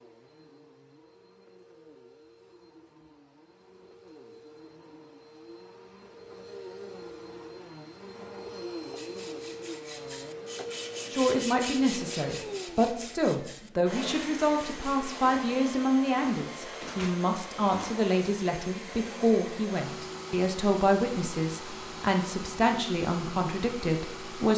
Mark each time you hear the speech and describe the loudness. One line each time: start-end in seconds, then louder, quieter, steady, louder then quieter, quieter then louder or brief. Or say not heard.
11.1-24.5 steady.